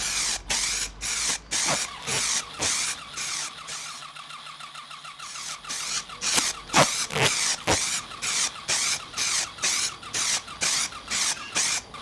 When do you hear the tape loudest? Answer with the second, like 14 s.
7 s.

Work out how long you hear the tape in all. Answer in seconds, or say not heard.
3 s.